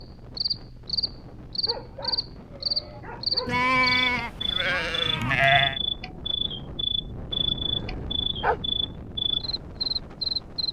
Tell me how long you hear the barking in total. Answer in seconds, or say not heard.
3 s.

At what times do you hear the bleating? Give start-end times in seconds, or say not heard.
3.5-5.8.